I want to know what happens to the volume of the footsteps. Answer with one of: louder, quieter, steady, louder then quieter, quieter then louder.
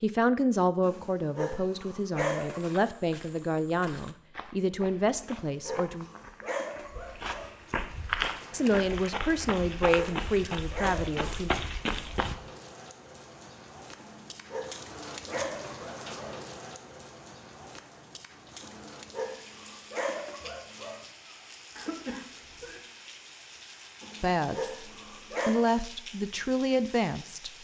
louder.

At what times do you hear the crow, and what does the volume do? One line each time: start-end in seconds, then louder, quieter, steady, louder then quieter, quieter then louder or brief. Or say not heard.
not heard.